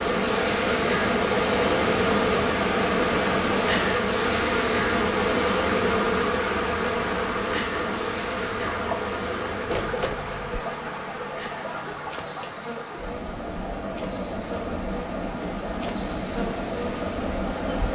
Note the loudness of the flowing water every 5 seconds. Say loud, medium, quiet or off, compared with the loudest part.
loud, loud, medium, loud.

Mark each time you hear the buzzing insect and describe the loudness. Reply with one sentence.
You can hear the buzzing insect from 0.0 to 17.9 s, getting quieter.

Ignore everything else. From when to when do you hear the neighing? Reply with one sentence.
You can hear the neighing from 9.7 to 10.7 s.